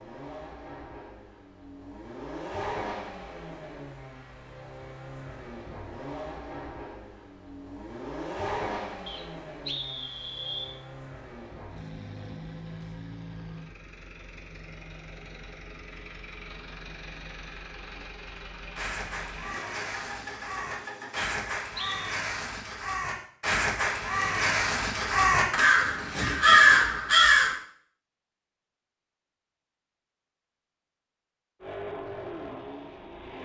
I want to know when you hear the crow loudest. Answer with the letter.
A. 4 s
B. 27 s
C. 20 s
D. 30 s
B.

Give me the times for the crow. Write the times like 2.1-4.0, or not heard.
18.8-27.6.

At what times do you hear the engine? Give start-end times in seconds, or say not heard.
0.0-21.6, 31.6-33.4.